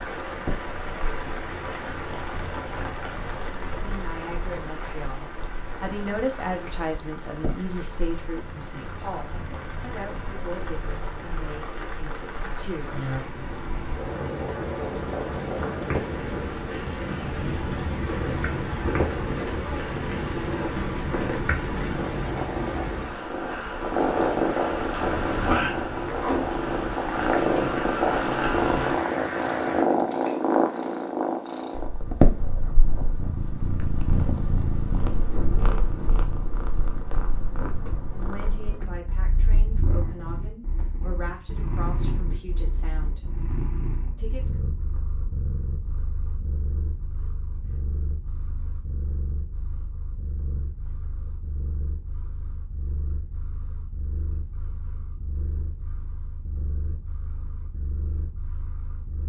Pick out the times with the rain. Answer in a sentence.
You can hear the rain from 0.0 to 29.9 s.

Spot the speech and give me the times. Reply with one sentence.
You can hear the speech from 3.5 to 12.9 s, from 38.1 to 43.3 s and from 44.1 to 44.6 s.